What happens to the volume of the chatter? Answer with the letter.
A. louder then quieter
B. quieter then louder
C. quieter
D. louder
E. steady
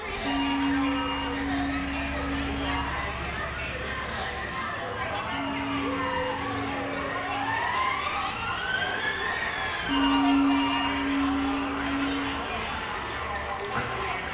E.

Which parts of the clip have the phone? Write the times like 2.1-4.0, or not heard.
0.2-2.9, 5.3-7.6, 9.8-12.4.